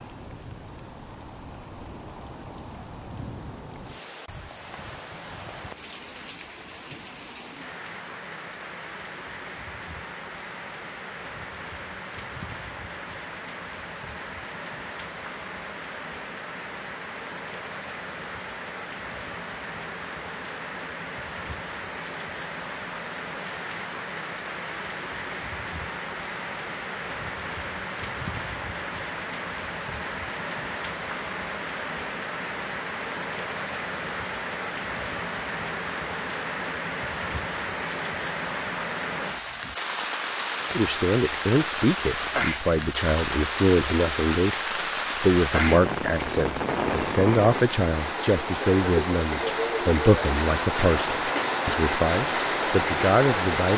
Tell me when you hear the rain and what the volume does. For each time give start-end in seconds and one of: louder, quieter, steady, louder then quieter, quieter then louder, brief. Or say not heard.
0.0-53.7 louder.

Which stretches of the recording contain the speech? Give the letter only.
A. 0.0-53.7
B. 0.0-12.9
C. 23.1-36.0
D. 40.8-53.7
D.